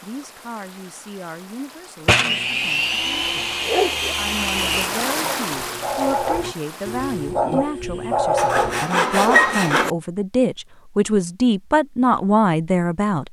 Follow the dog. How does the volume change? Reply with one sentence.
The loudness of the dog goes up.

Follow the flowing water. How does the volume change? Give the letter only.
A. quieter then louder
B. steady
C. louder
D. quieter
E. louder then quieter
E.